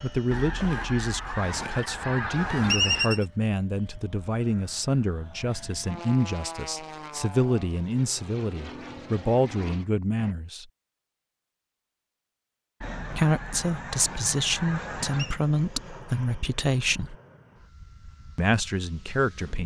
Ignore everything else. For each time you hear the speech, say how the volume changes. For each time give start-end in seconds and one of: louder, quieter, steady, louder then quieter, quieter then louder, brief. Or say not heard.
0.0-10.7 steady
13.1-17.1 steady
18.4-19.6 brief.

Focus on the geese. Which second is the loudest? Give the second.
3 s.